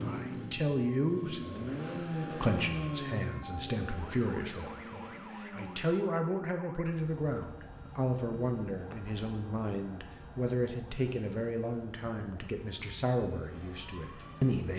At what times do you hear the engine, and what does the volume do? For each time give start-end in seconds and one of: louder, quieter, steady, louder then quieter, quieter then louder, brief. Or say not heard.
0.0-5.8 louder then quieter.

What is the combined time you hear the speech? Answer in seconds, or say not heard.
15 s.